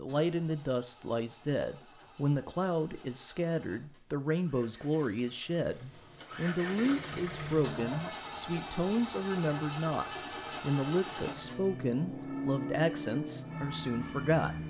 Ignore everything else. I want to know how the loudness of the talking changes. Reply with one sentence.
The loudness of the talking stays about the same.